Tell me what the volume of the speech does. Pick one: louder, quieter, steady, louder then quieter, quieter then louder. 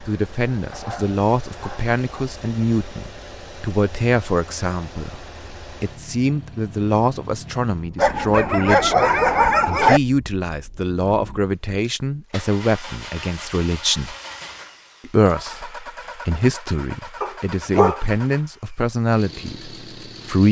steady.